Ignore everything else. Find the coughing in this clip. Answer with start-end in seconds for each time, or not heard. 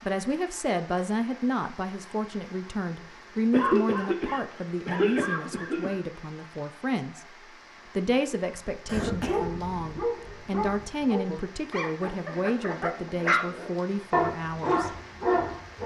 3.5-6.0, 8.8-9.9.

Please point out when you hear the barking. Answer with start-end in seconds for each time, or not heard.
8.8-15.8.